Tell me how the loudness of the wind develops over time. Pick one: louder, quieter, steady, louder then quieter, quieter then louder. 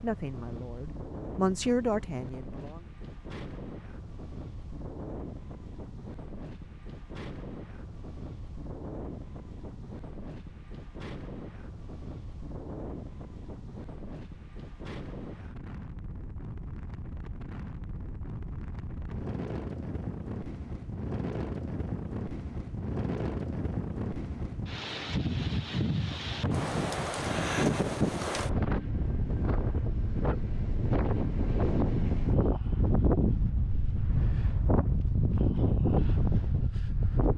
louder.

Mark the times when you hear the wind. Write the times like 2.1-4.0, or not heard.
0.0-37.3.